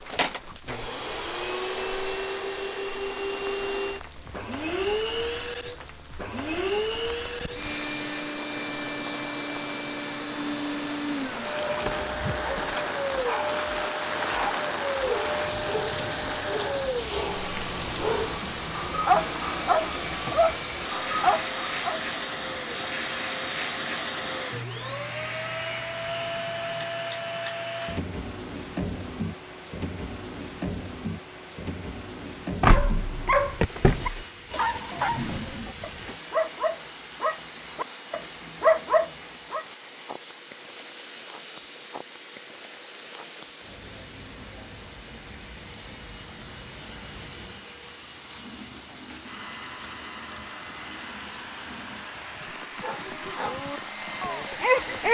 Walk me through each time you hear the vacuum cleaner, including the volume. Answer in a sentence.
The vacuum cleaner can be heard from 0.0 to 55.0 s, getting quieter.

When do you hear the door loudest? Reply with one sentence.
The volume of the door peaks at 33 seconds.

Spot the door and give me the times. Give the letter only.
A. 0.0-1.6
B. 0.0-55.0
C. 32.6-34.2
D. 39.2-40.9
C.